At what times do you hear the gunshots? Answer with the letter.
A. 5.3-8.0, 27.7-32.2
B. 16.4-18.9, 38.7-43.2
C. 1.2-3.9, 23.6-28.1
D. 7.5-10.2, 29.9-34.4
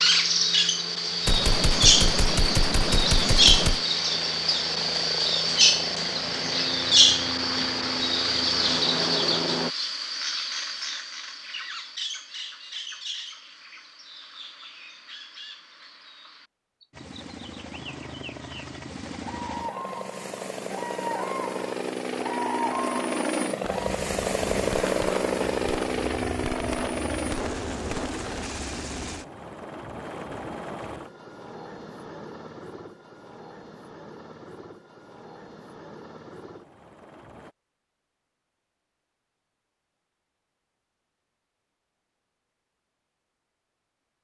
C.